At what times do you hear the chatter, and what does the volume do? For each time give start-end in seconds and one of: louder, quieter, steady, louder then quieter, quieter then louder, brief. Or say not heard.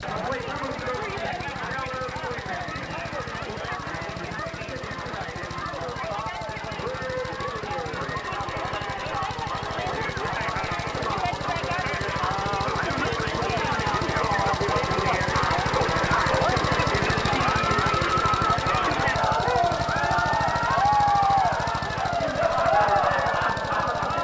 0.0-24.1 louder.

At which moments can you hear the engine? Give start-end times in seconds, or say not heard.
0.0-24.1.